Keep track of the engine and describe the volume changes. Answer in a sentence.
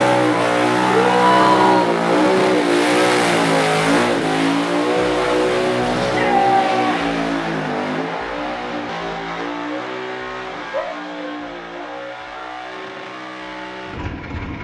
The volume of the engine goes down.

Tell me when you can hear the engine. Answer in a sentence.
The engine can be heard from 0.0 to 14.5 s.